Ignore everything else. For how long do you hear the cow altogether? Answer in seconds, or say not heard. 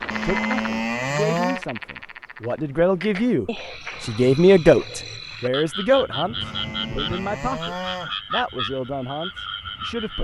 3 s.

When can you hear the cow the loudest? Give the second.
1 s.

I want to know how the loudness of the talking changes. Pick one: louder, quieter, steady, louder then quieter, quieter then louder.
louder then quieter.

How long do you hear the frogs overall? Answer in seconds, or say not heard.
10 s.